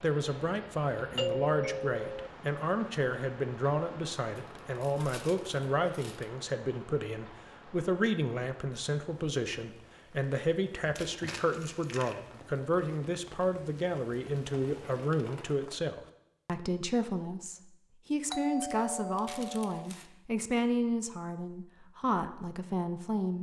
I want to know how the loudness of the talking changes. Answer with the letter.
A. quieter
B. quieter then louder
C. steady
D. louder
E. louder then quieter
C.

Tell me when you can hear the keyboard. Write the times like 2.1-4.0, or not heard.
not heard.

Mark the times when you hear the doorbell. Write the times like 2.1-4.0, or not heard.
1.1-2.3, 18.3-19.9.